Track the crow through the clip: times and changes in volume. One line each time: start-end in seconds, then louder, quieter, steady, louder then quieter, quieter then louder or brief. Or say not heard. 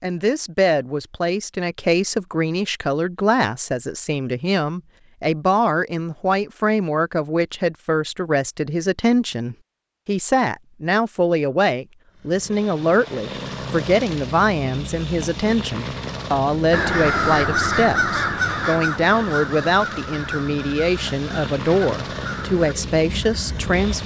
16.7-24.0 quieter.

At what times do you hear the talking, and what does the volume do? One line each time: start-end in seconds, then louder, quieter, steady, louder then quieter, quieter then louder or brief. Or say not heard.
0.0-24.0 steady.